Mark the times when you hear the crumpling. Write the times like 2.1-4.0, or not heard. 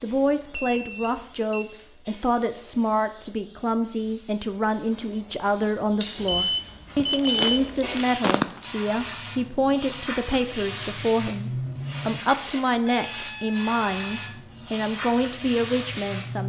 7.0-8.7.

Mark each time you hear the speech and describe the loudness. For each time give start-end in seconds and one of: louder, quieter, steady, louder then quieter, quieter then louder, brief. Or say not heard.
0.0-16.4 steady.